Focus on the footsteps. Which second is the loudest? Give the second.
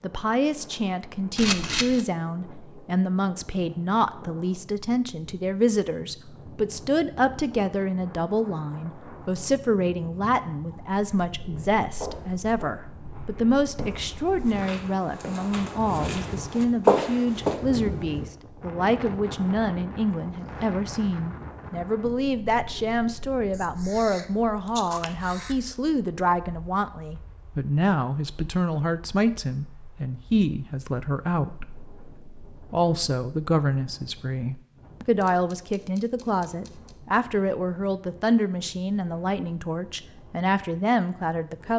17 s.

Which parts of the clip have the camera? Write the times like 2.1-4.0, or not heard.
1.4-2.0, 23.5-25.6, 35.2-37.0.